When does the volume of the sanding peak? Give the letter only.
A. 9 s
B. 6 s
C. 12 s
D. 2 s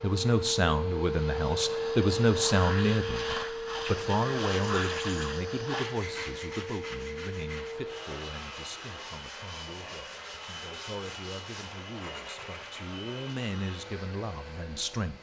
B.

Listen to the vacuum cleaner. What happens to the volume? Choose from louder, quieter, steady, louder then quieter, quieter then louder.
quieter.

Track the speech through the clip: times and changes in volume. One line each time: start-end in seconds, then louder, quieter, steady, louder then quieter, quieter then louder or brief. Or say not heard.
0.0-15.1 quieter then louder.